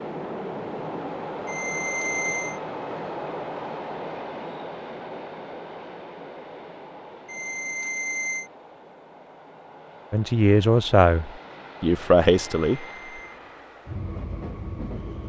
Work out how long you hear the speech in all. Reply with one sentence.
You can hear the speech for 3 seconds altogether.